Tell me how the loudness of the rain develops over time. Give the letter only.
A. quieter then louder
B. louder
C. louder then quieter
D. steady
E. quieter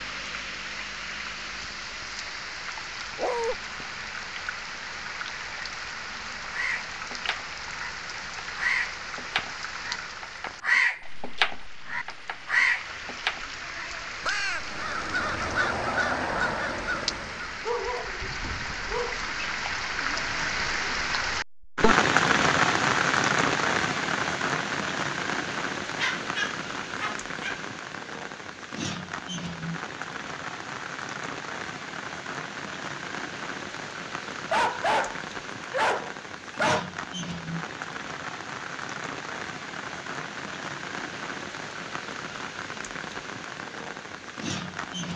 C.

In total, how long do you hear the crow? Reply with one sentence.
The crow can be heard for 11 seconds in total.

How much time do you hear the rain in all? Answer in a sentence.
The rain can be heard for 45 seconds in total.